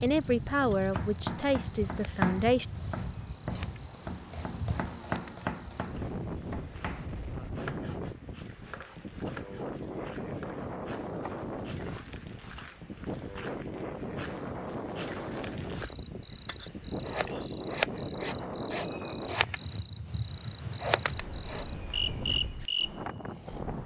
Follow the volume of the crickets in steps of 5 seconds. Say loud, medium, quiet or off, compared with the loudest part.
quiet, quiet, medium, loud, loud.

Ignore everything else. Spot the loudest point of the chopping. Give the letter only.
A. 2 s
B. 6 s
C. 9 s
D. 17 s
A.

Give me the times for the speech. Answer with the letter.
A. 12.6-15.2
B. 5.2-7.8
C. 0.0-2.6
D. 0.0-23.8
C.